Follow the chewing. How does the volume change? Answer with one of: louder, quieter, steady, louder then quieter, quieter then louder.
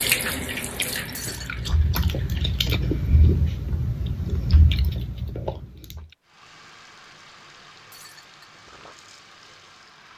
louder then quieter.